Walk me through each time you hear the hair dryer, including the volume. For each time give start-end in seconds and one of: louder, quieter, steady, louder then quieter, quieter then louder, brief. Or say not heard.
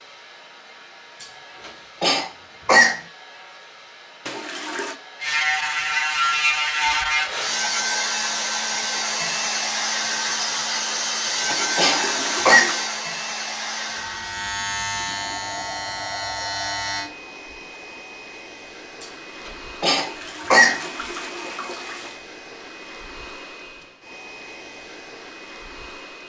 0.0-26.2 louder then quieter.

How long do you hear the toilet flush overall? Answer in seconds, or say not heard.
4 s.